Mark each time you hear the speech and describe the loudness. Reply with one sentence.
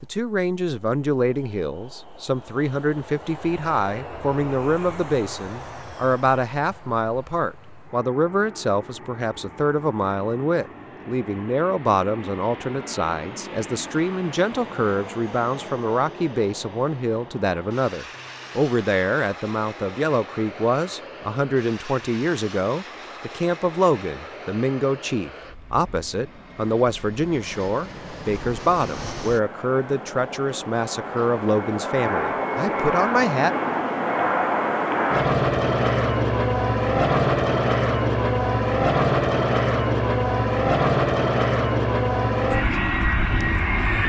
The speech can be heard from 0.0 to 33.5 s, at a steady volume.